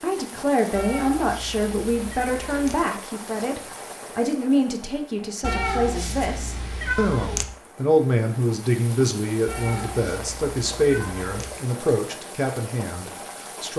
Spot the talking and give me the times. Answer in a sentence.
The talking can be heard from 0.0 to 13.7 s.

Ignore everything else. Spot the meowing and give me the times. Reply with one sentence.
You can hear the meowing from 0.8 to 2.8 s, from 5.4 to 7.5 s and from 9.4 to 11.5 s.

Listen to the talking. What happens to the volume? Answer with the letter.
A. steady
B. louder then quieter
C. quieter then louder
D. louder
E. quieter
A.